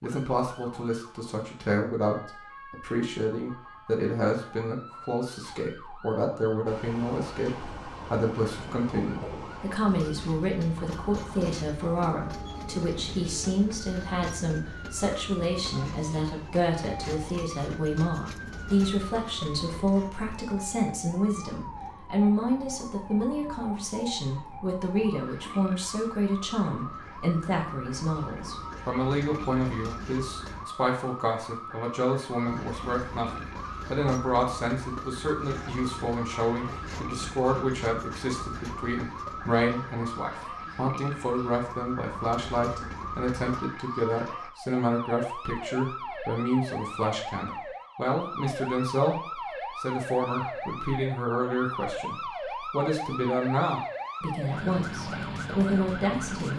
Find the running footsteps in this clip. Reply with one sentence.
You can't hear the running footsteps here.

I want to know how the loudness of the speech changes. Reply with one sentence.
The volume of the speech stays about the same.